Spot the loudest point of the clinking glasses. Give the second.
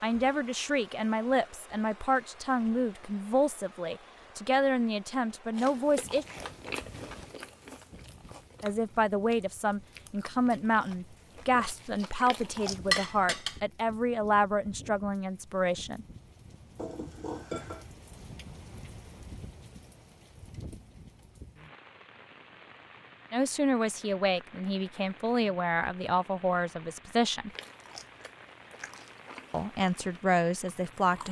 13 s.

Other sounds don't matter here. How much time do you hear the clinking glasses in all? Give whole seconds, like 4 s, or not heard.
2 s.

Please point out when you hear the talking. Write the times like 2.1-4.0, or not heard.
0.0-6.2, 8.6-16.1, 23.3-27.5, 29.5-31.2.